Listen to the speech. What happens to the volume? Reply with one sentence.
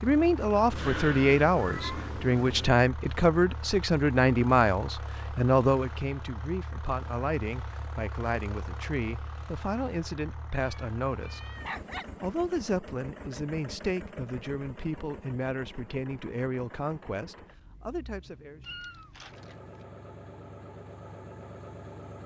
The volume of the speech goes down.